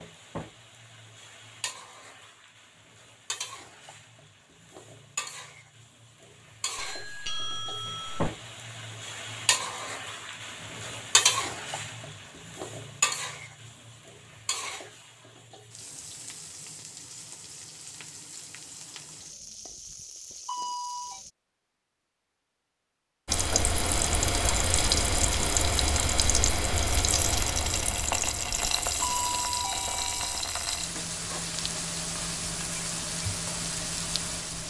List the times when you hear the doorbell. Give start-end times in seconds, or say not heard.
6.8-8.2, 20.4-21.2, 29.0-30.4.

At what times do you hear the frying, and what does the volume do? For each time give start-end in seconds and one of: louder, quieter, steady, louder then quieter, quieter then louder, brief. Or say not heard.
0.0-21.3 louder then quieter
23.2-34.6 quieter.